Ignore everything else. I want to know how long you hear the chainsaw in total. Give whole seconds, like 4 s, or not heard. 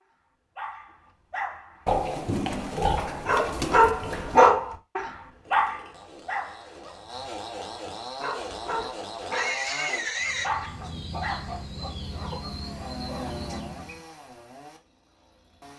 8 s.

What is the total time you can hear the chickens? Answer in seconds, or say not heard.
4 s.